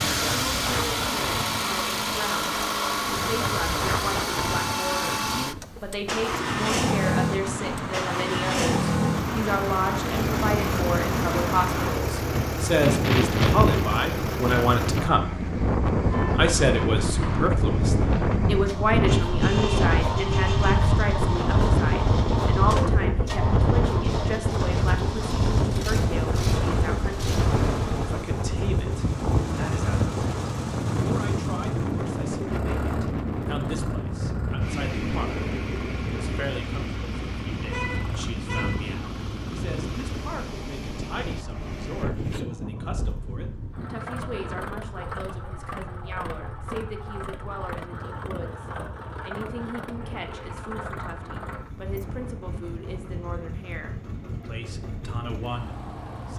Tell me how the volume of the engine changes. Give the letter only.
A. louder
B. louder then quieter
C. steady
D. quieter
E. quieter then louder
D.